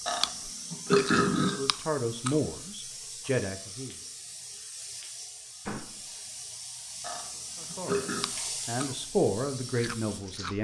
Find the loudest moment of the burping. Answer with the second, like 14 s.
1 s.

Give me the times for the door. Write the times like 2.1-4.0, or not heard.
5.7-6.1.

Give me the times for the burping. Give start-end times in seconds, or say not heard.
0.1-1.6, 7.0-8.3.